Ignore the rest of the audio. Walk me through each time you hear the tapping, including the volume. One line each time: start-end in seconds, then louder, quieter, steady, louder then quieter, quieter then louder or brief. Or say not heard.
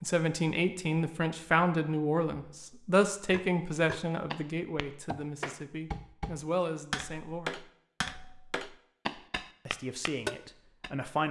3.3-10.9 louder.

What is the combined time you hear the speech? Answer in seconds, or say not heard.
9 s.